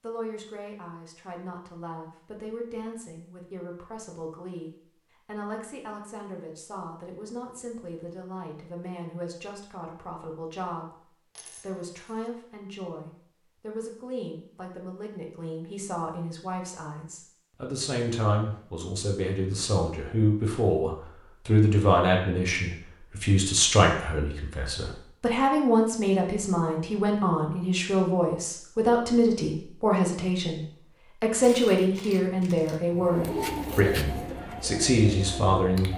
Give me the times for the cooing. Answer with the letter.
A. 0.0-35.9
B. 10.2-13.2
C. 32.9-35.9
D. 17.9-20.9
C.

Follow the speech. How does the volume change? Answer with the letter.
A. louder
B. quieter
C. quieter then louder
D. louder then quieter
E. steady
A.